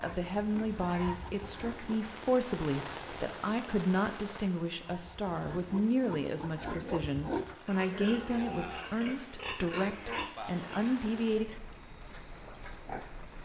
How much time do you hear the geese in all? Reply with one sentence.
You can't hear the geese here.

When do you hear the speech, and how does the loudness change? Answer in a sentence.
The speech can be heard from 0.0 to 11.4 s, at a steady volume.